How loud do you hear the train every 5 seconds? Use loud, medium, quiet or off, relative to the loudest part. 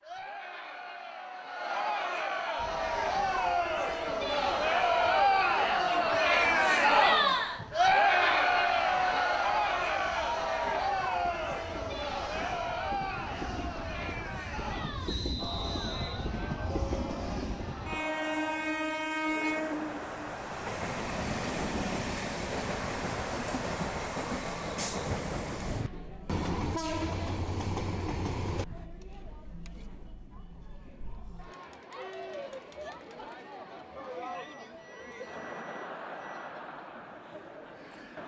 quiet, quiet, medium, loud, loud, loud, off, off.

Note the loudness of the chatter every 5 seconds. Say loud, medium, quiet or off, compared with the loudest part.
medium, loud, medium, quiet, quiet, quiet, quiet, quiet.